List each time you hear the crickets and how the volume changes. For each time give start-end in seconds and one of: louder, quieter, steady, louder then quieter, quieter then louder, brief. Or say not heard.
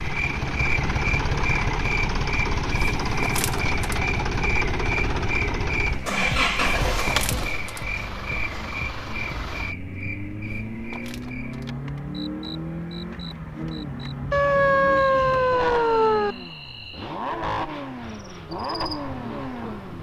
0.0-19.9 quieter.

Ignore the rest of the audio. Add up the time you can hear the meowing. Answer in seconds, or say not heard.
2 s.